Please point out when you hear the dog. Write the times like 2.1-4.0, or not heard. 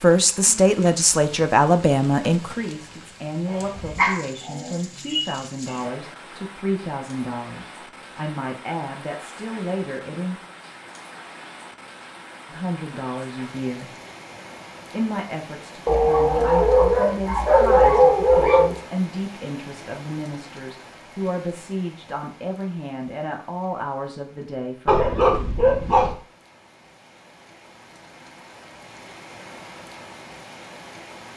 3.5-5.9, 15.8-18.8, 24.9-26.1.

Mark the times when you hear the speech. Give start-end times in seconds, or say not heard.
0.0-10.4, 12.5-13.9, 14.9-25.1.